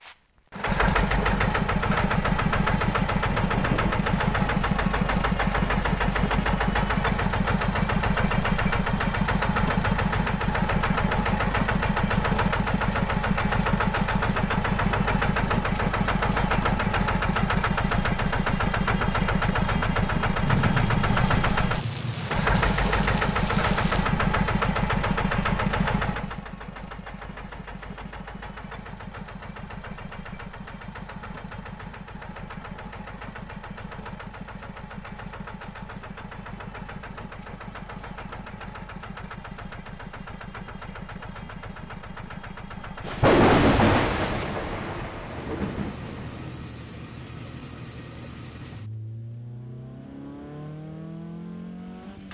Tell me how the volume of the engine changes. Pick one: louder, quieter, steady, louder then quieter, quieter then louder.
quieter.